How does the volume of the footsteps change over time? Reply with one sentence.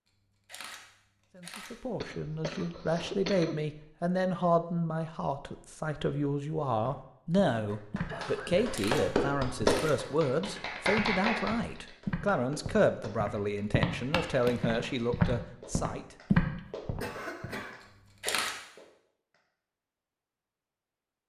The volume of the footsteps goes up.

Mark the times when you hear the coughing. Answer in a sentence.
You can hear the coughing from 2.0 to 3.5 s, from 8.1 to 8.8 s and from 16.6 to 17.9 s.